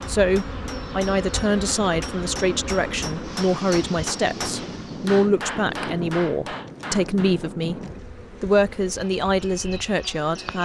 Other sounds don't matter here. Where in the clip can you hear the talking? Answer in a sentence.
You can hear the talking from 0.1 to 7.8 s and from 8.4 to 10.6 s.